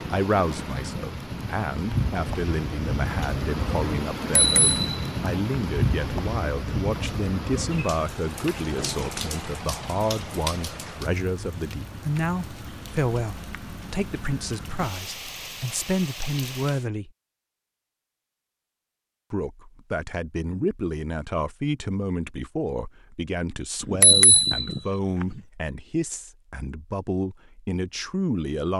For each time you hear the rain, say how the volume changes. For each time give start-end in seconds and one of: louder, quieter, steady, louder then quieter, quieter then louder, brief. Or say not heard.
0.0-16.9 quieter.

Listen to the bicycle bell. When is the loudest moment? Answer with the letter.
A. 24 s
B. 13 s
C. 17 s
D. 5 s
A.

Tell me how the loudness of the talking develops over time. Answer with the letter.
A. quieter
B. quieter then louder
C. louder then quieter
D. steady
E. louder
D.